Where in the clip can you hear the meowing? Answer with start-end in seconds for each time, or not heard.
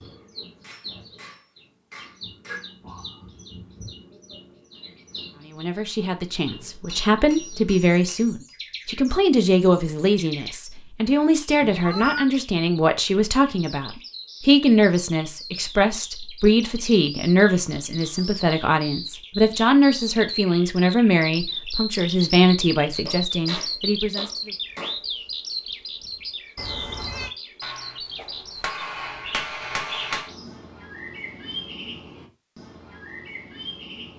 11.6-12.3, 26.6-27.3.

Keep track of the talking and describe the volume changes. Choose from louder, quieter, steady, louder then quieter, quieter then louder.
steady.